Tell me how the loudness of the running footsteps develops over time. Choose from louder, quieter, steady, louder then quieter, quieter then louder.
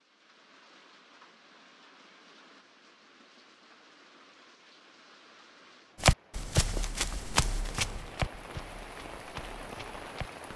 quieter then louder.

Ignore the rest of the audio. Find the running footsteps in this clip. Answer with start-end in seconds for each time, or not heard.
6.0-10.5.